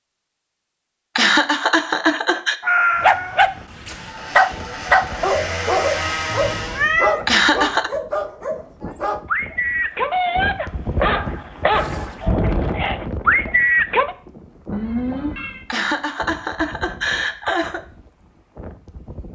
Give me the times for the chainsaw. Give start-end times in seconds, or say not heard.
3.9-6.9.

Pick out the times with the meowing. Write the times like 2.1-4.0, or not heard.
2.6-3.4, 6.7-7.2, 14.7-15.7.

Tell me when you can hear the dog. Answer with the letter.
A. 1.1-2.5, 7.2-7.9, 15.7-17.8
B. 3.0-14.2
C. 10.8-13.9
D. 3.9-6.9
B.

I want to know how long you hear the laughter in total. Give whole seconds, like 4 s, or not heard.
4 s.